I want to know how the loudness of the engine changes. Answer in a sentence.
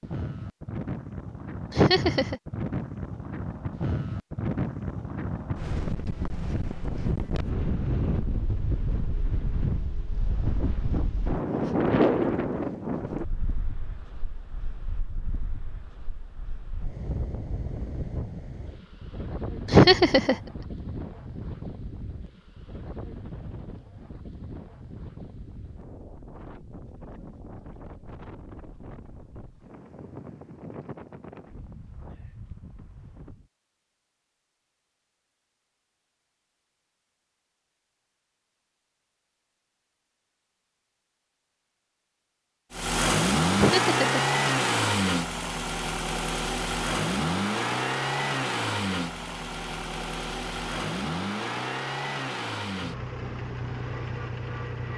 The loudness of the engine goes down.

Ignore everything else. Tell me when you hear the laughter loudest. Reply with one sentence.
The volume of the laughter peaks at 20 seconds.